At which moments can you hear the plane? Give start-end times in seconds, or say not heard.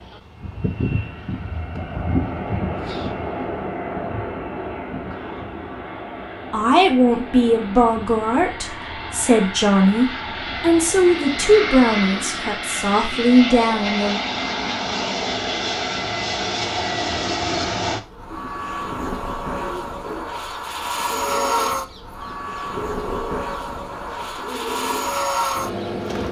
0.0-26.2.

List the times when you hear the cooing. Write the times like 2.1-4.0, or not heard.
18.3-26.2.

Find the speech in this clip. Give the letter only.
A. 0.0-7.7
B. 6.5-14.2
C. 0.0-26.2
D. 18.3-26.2
B.